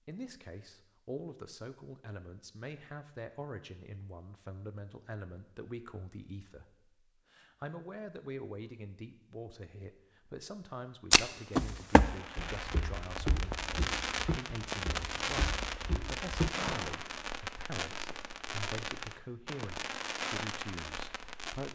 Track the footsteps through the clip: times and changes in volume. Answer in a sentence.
You can hear the footsteps from 11.1 to 17.0 s, getting quieter then louder.